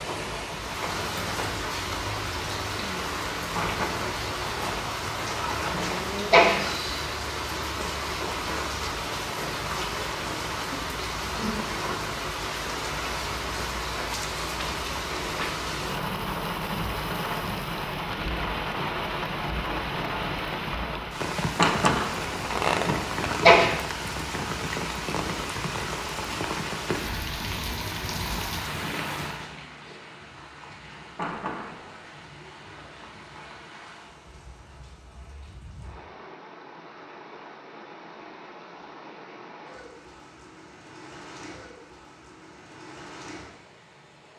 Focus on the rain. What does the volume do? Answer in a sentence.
The volume of the rain goes down.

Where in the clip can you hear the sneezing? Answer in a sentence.
The sneezing can be heard from 5.7 to 6.6 s and from 22.9 to 23.8 s.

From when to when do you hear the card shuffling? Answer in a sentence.
The card shuffling can be heard from 3.5 to 6.0 s, from 21.6 to 23.4 s and from 31.1 to 32.0 s.